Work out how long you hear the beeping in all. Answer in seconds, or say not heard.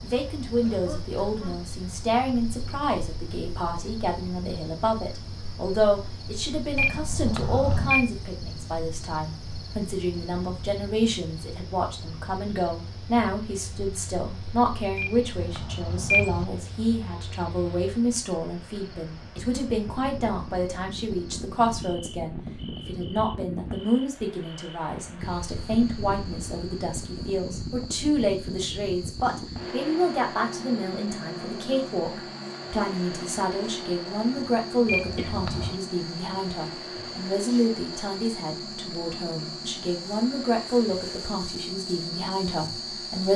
4 s.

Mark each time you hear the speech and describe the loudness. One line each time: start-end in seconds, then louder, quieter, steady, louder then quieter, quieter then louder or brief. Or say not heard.
0.0-43.3 steady.